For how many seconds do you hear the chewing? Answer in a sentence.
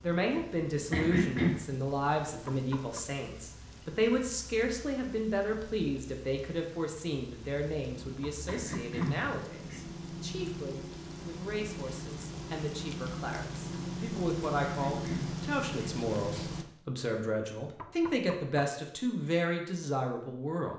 The chewing can't be heard in this clip.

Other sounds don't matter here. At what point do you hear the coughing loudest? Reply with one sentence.
The volume of the coughing peaks at 1 second.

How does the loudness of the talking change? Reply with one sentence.
The volume of the talking goes down, then up.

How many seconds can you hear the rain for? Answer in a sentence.
You can hear the rain for 17 seconds altogether.